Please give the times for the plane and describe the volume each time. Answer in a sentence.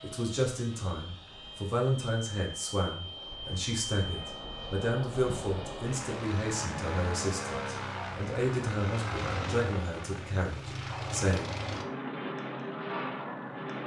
You can hear the plane from 0.0 to 13.8 s, getting louder.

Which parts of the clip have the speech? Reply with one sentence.
The speech can be heard from 0.0 to 11.6 s.